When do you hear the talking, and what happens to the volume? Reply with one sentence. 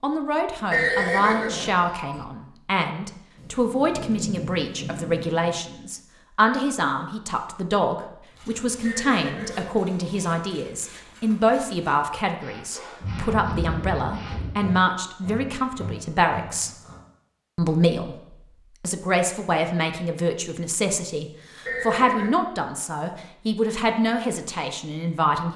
The talking can be heard from 0.0 to 16.7 s, at a steady volume; and from 17.6 to 25.5 s, at a steady volume.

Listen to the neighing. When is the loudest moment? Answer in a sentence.
The loudest moment of the neighing is at 1 second.